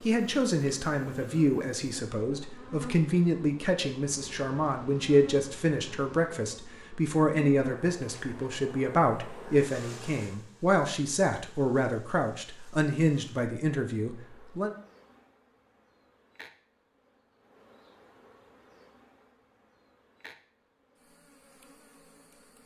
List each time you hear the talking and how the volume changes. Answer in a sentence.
The talking can be heard from 0.0 to 14.8 s, at a steady volume.